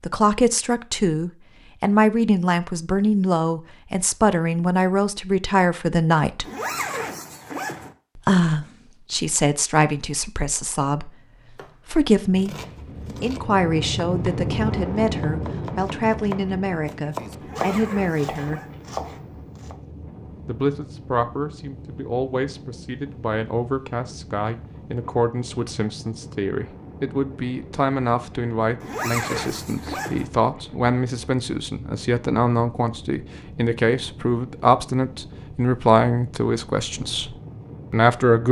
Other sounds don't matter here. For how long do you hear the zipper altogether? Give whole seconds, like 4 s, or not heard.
4 s.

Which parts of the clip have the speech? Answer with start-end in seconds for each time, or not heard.
0.0-6.5, 8.2-12.6, 13.2-18.6, 20.4-38.4.